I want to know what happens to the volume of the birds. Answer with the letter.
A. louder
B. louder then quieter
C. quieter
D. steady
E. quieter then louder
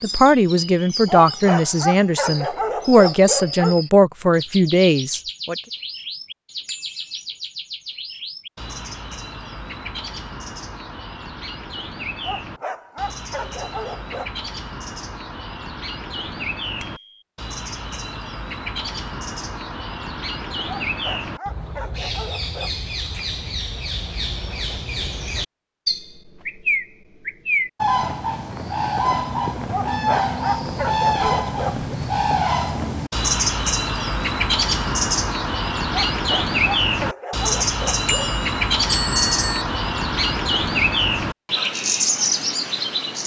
A.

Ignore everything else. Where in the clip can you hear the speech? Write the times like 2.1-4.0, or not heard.
0.0-5.5.